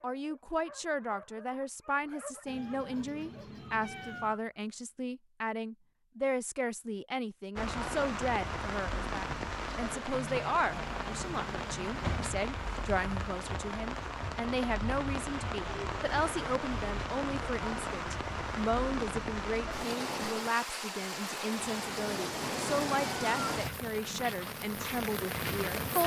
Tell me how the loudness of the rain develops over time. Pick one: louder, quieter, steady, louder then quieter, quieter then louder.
steady.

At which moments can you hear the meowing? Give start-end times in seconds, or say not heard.
2.5-4.4, 10.7-12.2, 21.6-23.6.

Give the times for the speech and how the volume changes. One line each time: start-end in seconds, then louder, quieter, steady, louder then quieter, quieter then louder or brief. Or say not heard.
0.0-26.0 steady.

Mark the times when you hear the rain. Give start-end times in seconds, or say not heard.
7.5-26.0.